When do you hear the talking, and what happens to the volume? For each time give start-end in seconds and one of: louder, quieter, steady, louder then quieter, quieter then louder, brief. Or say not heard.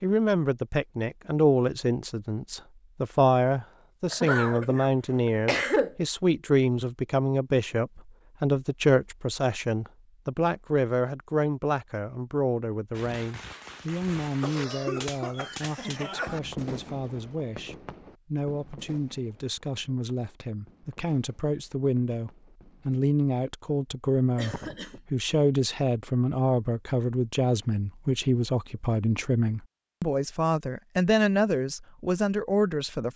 0.0-33.1 quieter then louder.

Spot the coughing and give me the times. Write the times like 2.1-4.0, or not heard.
4.1-6.0, 14.4-16.4, 24.4-25.0.